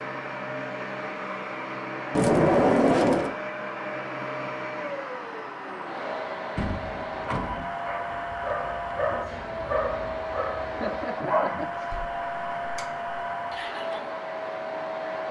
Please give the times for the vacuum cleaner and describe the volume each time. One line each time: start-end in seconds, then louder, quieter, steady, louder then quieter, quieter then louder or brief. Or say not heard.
0.0-15.2 steady.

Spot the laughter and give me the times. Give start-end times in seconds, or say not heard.
10.7-11.9.